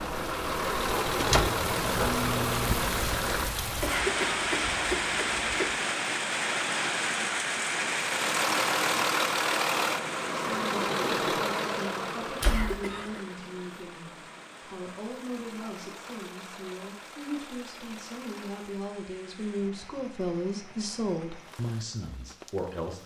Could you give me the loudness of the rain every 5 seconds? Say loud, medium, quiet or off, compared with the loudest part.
loud, loud, quiet, quiet, quiet.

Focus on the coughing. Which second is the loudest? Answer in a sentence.
The volume of the coughing peaks at 4 seconds.